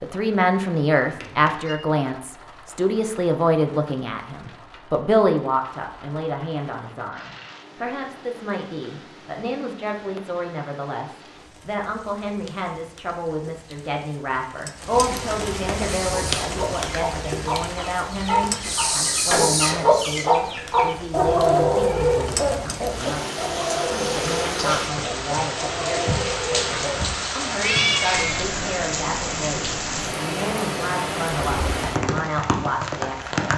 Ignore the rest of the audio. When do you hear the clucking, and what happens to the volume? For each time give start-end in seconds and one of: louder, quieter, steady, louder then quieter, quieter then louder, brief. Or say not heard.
15.8-27.1 louder then quieter.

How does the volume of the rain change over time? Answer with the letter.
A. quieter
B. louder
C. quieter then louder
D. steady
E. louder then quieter
B.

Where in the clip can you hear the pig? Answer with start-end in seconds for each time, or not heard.
not heard.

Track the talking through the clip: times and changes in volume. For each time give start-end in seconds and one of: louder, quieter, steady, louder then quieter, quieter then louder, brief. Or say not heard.
0.0-33.5 quieter.